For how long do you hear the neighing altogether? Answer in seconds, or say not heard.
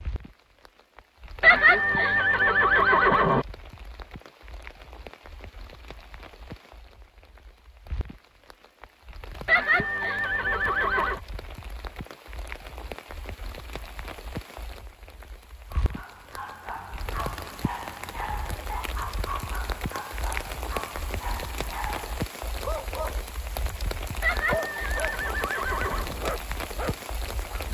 6 s.